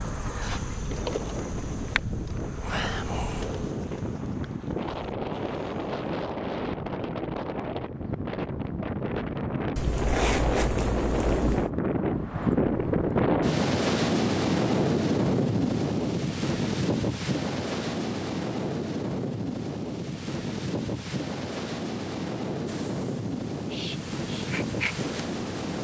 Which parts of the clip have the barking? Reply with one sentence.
You can't hear the barking here.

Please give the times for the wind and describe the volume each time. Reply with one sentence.
The wind can be heard from 0.0 to 25.7 s, getting louder then quieter.